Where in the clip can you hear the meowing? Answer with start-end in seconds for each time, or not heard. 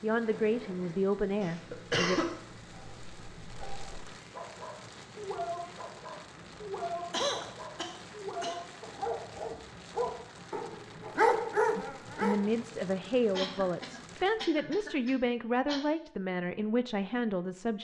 not heard.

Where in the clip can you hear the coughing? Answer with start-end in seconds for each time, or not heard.
1.4-2.3, 7.1-8.6, 13.3-15.8.